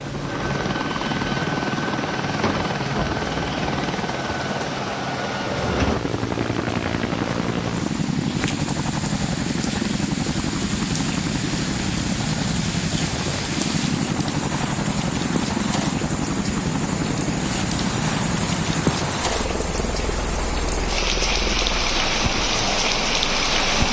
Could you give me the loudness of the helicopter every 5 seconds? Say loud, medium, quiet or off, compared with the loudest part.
loud, loud, loud, loud, medium.